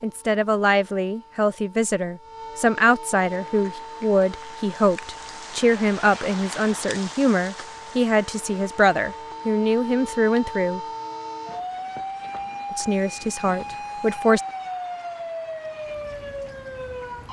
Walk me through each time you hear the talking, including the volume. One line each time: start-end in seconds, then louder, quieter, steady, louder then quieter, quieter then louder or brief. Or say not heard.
0.0-10.8 steady
12.7-14.4 brief.